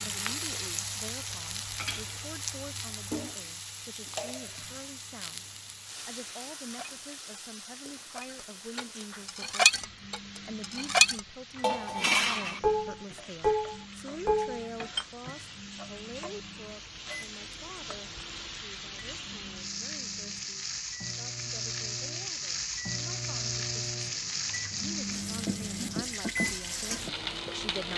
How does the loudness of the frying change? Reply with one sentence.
The volume of the frying goes down, then up.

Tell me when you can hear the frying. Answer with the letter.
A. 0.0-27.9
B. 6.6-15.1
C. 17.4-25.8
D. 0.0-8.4
A.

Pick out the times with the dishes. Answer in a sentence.
The dishes can be heard from 6.6 to 15.1 s.